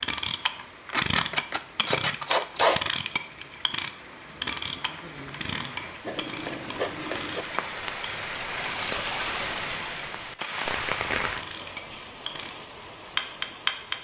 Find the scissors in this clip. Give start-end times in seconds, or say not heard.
0.9-2.9, 6.0-7.5, 10.8-11.2.